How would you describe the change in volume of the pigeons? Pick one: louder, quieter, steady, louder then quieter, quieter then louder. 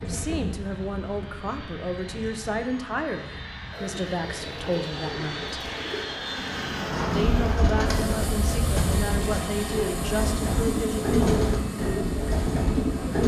louder.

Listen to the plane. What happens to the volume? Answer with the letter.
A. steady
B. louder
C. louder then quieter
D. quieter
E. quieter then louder
B.